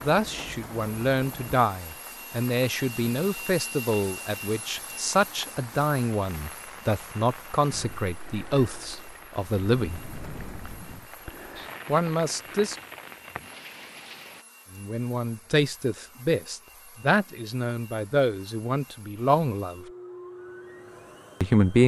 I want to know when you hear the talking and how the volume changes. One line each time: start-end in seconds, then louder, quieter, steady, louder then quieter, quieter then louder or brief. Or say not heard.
0.0-10.1 steady
11.8-12.8 brief
14.8-19.9 steady
21.4-21.8 brief.